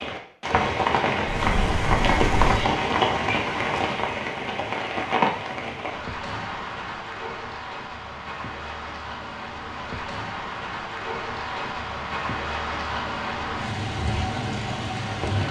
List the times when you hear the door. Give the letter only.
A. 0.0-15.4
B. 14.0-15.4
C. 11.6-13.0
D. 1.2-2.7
D.